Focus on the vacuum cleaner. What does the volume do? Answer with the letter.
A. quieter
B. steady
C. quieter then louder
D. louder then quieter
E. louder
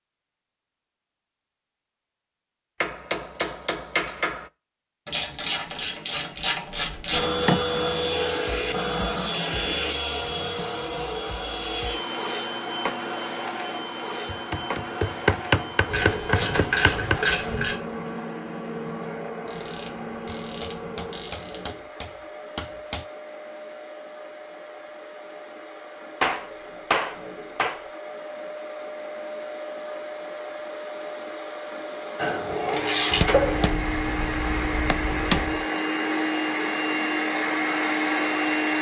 C.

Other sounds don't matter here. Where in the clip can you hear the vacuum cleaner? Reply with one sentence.
You can hear the vacuum cleaner from 7.1 to 38.7 s.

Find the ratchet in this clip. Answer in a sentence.
The ratchet can be heard from 5.0 to 7.4 s, from 15.9 to 17.8 s, from 19.4 to 21.6 s and from 32.1 to 33.8 s.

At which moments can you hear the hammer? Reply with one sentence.
The hammer can be heard from 2.8 to 4.5 s, from 7.3 to 7.8 s, from 14.2 to 17.2 s, from 20.4 to 23.1 s, from 26.2 to 27.9 s and from 33.1 to 35.6 s.